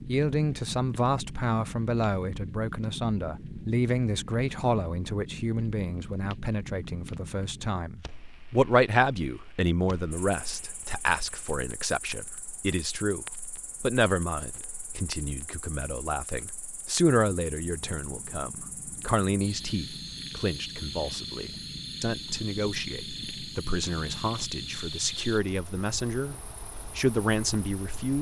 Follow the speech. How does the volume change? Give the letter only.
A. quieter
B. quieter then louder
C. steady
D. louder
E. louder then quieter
C.